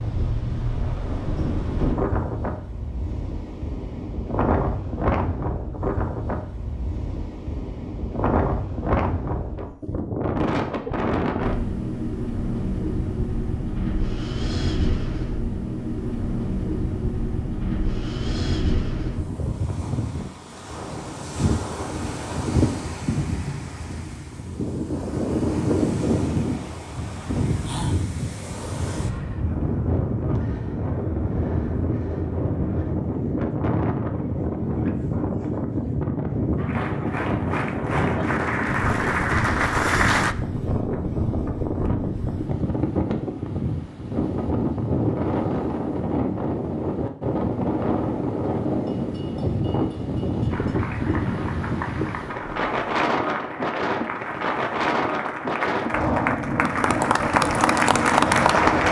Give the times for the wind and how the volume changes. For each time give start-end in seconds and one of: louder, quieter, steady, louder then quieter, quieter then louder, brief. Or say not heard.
0.0-58.8 steady.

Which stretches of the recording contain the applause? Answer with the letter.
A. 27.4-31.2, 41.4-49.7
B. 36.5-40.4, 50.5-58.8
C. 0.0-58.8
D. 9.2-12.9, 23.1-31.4
B.